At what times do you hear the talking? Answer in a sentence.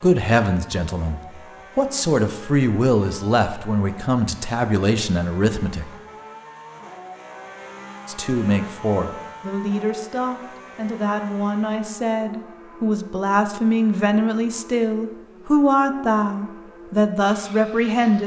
The talking can be heard from 0.0 to 5.9 s and from 8.1 to 18.2 s.